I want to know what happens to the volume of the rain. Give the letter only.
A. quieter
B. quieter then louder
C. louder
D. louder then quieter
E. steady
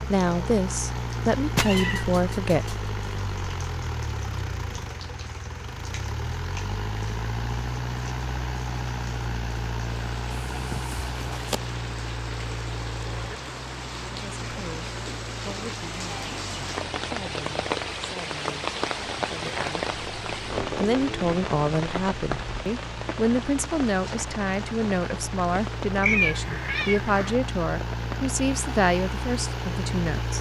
D.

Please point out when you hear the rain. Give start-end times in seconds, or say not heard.
0.0-30.3.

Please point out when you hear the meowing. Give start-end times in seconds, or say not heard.
1.6-2.8, 10.5-11.6, 26.0-27.4.